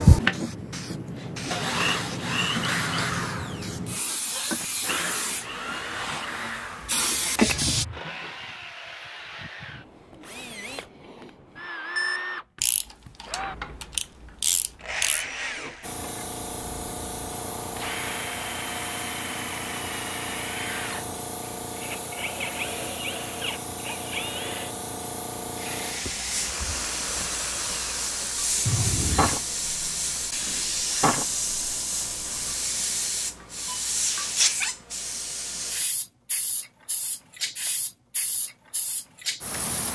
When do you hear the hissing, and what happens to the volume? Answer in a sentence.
The hissing can be heard from 0.1 to 7.8 s, getting louder; and from 15.8 to 39.9 s, getting louder then quieter.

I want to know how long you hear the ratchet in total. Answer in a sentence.
You can hear the ratchet for 3 seconds altogether.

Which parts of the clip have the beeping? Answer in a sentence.
The beeping can be heard from 11.9 to 13.2 s and from 28.6 to 29.4 s.